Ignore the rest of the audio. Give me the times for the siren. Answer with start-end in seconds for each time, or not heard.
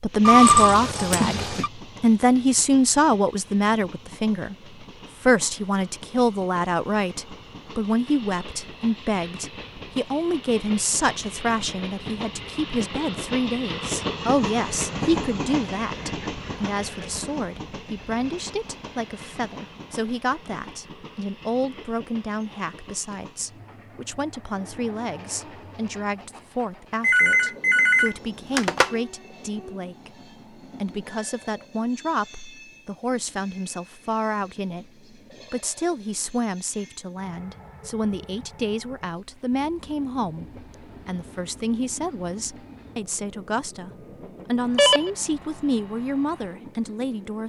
not heard.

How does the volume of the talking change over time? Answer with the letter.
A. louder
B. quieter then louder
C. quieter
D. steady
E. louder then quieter
C.